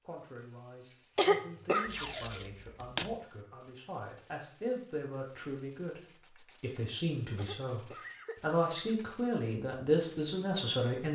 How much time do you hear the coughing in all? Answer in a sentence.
You can hear the coughing for 2 seconds altogether.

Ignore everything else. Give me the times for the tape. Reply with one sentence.
The tape can be heard from 1.9 to 3.1 s.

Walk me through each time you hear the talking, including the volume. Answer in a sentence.
You can hear the talking from 0.0 to 11.1 s, getting louder.